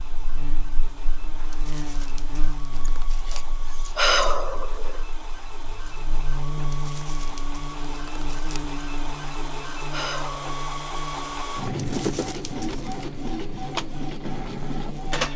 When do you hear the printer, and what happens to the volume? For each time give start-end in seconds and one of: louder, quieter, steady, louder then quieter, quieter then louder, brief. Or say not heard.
0.0-15.3 louder.